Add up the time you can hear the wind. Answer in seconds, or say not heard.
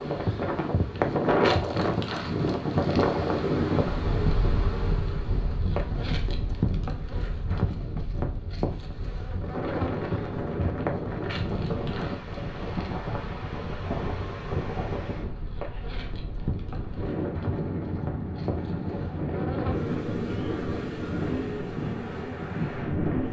23 s.